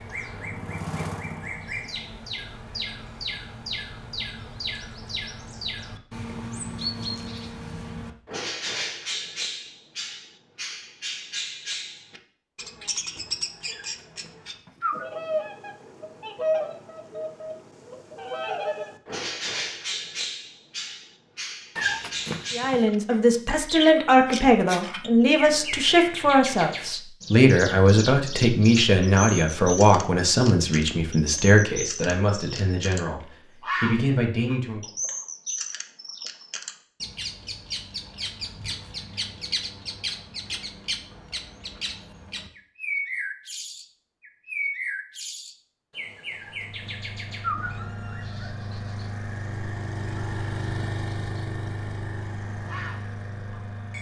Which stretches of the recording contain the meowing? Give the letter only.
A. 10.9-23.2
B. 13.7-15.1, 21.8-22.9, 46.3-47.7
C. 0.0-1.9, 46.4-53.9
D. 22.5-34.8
B.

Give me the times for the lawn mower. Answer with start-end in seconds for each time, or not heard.
0.0-1.9, 46.4-53.9.